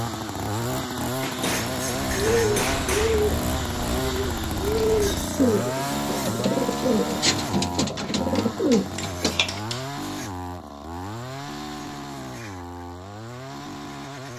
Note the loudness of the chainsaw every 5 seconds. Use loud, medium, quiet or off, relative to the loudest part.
loud, loud, medium.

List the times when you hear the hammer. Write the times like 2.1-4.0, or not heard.
1.2-3.2, 8.0-9.9.